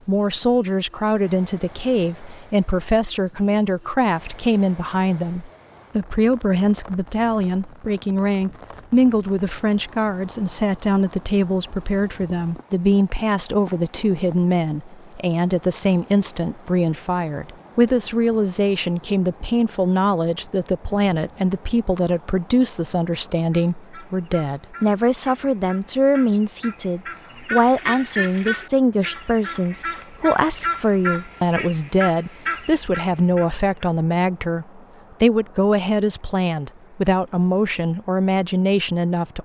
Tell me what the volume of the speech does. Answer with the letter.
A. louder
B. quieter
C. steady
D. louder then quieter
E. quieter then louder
C.